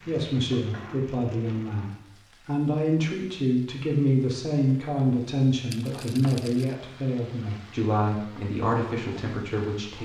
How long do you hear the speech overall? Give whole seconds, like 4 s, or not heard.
10 s.